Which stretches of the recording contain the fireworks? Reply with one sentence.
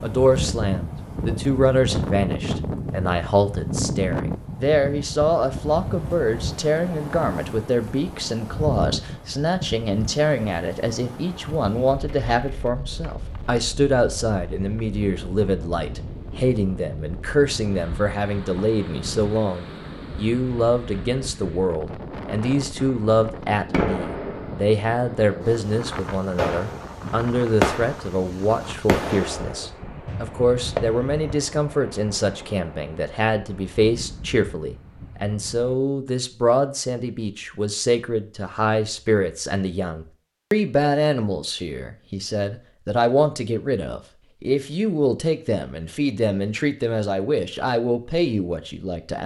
The fireworks can be heard from 22.8 to 31.4 s.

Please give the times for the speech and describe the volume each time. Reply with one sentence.
You can hear the speech from 0.0 to 49.2 s, at a steady volume.